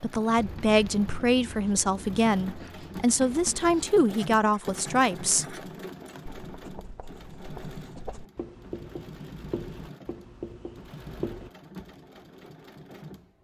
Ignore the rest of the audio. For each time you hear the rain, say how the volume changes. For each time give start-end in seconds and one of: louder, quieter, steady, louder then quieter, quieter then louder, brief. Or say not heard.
not heard.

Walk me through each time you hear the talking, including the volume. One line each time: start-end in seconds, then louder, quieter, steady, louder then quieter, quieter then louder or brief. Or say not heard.
0.0-5.5 steady.